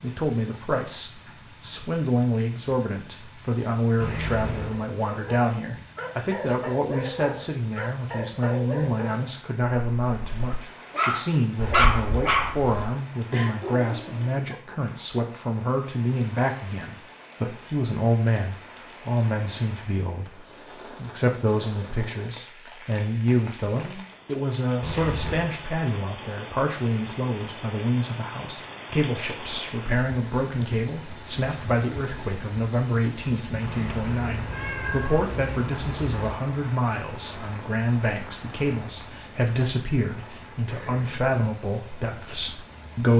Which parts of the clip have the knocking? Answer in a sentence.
You can't hear the knocking here.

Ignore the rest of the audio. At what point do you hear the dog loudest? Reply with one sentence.
The loudest moment of the dog is at 12 seconds.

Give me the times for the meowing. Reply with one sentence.
You can hear the meowing from 4.0 to 4.8 s, from 24.8 to 25.5 s and from 33.6 to 36.4 s.